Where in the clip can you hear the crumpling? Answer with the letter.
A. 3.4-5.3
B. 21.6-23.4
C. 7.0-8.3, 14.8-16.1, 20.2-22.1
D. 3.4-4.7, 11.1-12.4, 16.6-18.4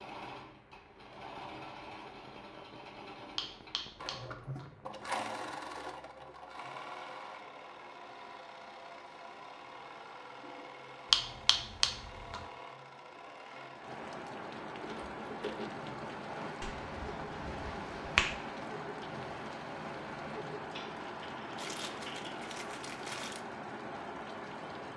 B.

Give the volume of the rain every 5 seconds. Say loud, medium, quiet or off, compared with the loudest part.
quiet, quiet, medium, loud, loud.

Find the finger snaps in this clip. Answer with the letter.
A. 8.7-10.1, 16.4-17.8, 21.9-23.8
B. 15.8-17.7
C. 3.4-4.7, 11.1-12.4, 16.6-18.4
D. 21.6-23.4
C.